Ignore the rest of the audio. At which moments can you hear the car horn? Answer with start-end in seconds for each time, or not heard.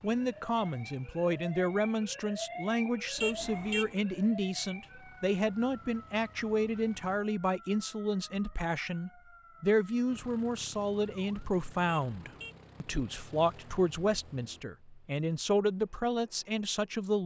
3.1-4.0, 11.9-12.6.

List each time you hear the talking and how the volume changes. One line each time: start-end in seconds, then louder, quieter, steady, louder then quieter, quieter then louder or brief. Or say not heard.
0.0-17.2 steady.